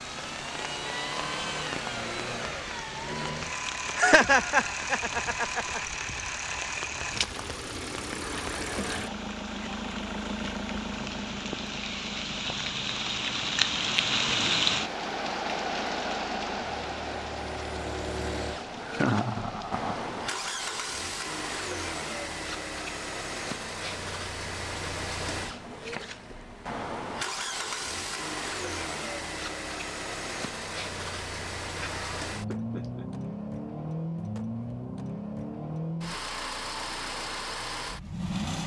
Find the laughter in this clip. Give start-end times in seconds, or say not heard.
4.0-5.8, 18.8-20.1, 31.6-33.0.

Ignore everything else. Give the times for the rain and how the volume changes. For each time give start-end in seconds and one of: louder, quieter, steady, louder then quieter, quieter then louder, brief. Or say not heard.
0.0-20.4 louder then quieter.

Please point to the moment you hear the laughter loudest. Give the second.
4 s.